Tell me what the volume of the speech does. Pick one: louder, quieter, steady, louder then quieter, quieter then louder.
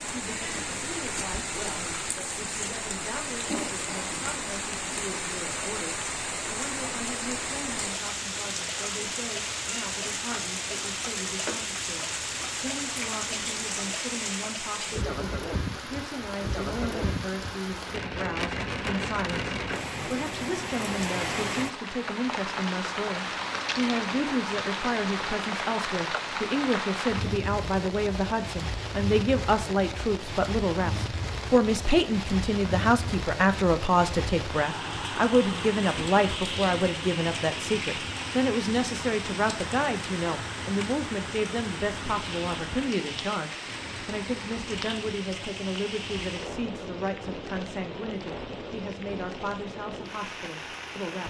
louder then quieter.